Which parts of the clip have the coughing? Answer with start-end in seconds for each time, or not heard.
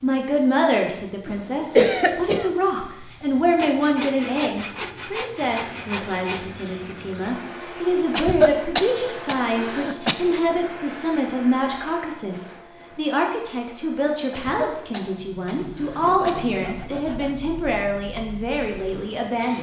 1.2-2.5, 8.1-10.2, 14.3-16.3.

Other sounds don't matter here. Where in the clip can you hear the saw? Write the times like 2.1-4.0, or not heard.
3.5-6.5, 15.5-17.4.